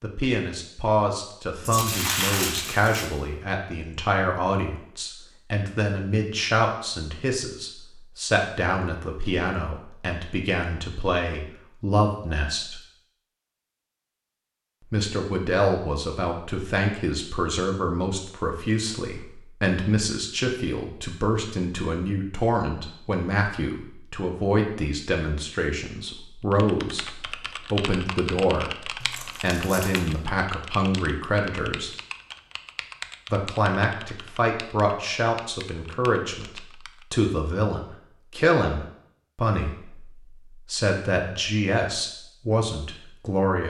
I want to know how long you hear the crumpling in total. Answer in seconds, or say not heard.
3 s.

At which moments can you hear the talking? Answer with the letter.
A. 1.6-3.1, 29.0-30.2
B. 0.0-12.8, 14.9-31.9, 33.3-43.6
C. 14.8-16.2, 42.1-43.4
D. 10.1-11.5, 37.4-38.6
B.